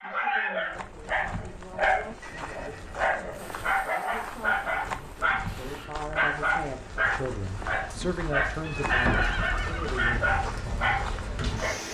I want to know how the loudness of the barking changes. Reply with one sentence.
The loudness of the barking stays about the same.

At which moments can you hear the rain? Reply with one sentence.
You can hear the rain from 3.3 to 11.8 s.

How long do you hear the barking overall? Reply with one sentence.
You can hear the barking for 12 seconds altogether.